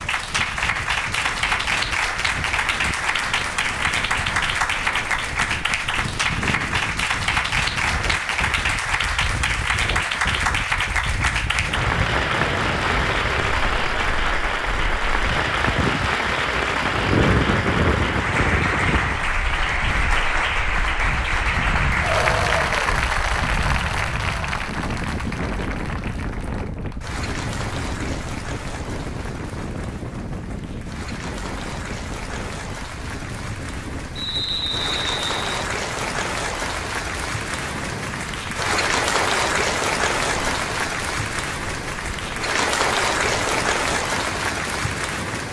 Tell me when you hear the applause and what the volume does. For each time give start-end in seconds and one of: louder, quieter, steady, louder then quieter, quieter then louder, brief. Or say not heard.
0.0-45.4 quieter then louder.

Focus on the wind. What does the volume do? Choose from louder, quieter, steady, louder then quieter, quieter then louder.
louder then quieter.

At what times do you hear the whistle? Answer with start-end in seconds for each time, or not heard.
34.1-35.5.